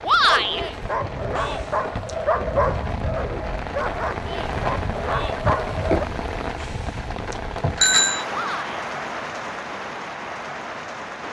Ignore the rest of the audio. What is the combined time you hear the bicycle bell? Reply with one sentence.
The bicycle bell can be heard for 3 seconds in total.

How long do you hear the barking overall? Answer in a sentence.
The barking can be heard for 6 seconds in total.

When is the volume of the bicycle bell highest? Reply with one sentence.
The volume of the bicycle bell peaks at 8 seconds.